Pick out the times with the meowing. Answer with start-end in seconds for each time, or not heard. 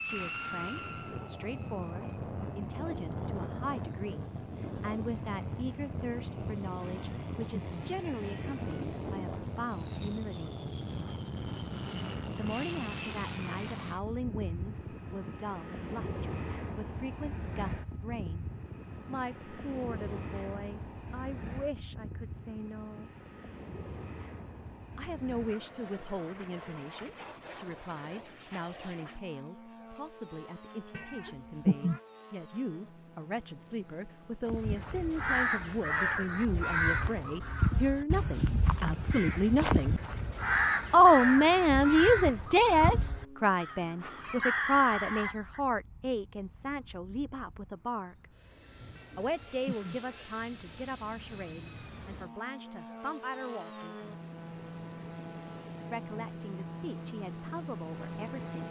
6.8-8.8, 30.9-32.0, 49.0-50.4.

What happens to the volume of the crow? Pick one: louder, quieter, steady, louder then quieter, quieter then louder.
steady.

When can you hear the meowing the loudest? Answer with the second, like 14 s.
32 s.